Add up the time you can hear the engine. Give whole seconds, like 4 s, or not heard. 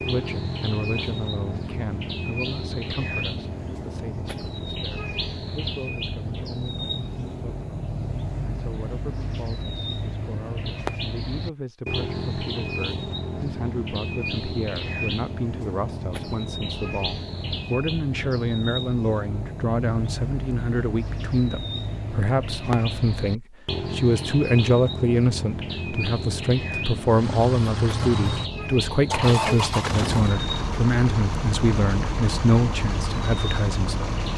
7 s.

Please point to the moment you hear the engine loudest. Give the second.
30 s.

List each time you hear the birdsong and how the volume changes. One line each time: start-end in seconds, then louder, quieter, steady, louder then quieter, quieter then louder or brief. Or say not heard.
0.0-34.3 steady.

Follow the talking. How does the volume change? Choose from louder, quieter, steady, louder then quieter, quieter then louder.
louder.